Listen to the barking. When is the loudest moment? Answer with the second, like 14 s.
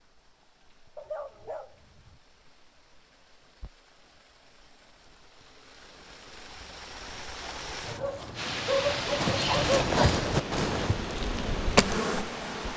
9 s.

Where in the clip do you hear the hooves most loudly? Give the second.
10 s.